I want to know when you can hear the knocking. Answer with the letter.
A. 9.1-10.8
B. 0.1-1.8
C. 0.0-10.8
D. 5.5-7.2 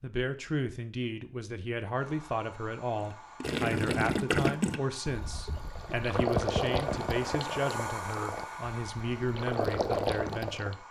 D.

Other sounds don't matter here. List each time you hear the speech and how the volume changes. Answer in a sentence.
You can hear the speech from 0.0 to 10.8 s, at a steady volume.